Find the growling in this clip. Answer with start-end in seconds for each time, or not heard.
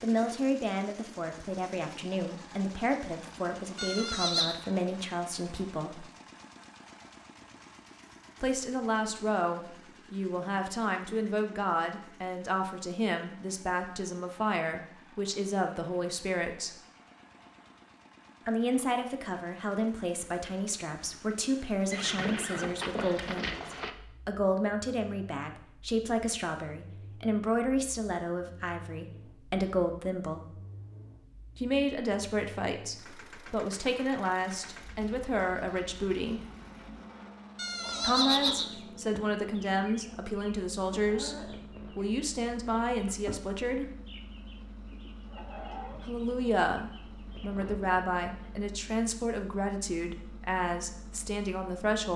not heard.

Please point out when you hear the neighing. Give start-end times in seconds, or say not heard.
3.8-4.5, 21.9-23.9, 37.5-38.8.